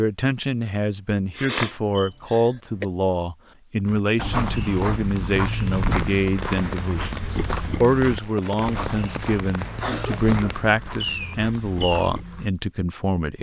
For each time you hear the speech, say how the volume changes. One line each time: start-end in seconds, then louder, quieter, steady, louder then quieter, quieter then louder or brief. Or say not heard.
0.0-13.3 steady.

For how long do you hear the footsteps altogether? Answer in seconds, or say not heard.
9 s.